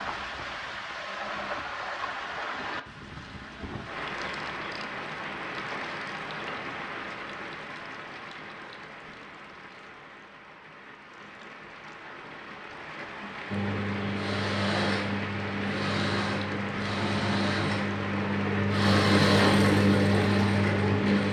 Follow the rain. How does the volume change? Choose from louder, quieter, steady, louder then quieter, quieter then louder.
quieter then louder.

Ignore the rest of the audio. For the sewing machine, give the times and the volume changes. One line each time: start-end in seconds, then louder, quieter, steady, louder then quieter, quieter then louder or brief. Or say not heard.
13.4-21.2 louder.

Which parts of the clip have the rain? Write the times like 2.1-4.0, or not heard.
0.0-21.2.